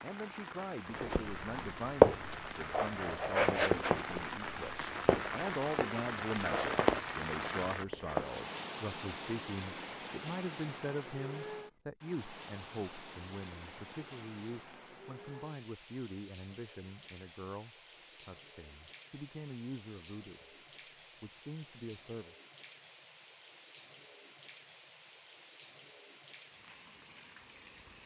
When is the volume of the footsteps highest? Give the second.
2 s.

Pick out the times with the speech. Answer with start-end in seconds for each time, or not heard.
0.0-20.4, 21.2-22.4.